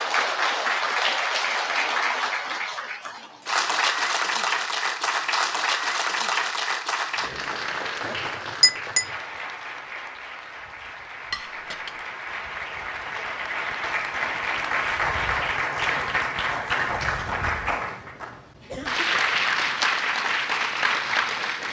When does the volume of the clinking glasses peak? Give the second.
9 s.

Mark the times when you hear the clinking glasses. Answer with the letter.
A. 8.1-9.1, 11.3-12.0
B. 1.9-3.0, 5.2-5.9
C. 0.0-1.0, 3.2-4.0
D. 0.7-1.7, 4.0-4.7
A.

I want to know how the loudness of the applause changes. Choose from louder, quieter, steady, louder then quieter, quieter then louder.
quieter then louder.